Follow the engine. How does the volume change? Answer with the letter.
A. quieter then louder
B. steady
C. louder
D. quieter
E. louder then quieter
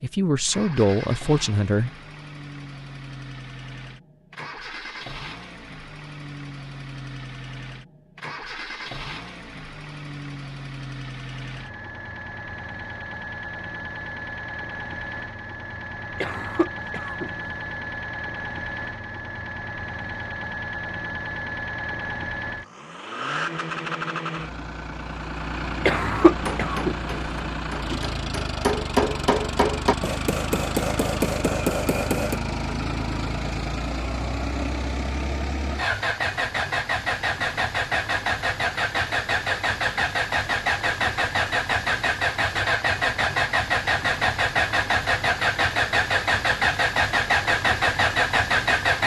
C.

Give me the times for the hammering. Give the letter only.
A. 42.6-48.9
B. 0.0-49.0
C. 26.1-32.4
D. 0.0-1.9
C.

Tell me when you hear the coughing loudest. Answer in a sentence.
The loudest moment of the coughing is at 26 seconds.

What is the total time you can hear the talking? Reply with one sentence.
You can hear the talking for 2 seconds altogether.